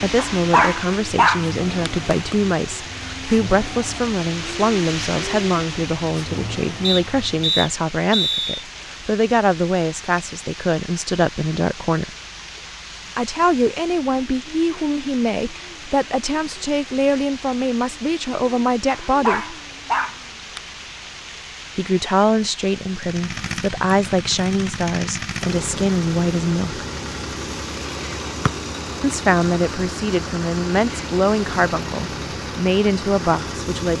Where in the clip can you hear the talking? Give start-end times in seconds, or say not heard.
0.0-12.1, 13.2-19.6, 21.8-26.9, 29.0-33.9.